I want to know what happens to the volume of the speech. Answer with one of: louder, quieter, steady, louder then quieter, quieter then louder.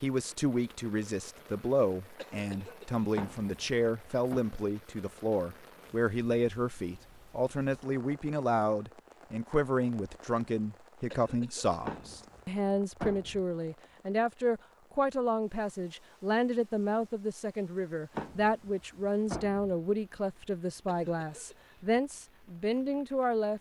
steady.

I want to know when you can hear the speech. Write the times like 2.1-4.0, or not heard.
0.0-23.5.